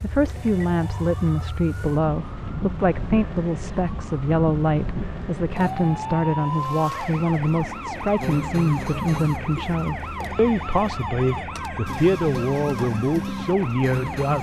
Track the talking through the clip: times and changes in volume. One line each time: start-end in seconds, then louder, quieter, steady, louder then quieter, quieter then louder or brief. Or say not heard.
0.0-14.3 steady.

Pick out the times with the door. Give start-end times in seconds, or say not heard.
not heard.